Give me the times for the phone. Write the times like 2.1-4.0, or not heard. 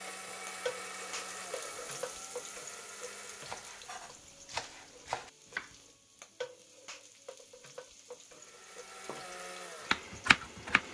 not heard.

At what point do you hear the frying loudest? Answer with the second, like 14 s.
1 s.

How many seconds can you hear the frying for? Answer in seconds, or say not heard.
11 s.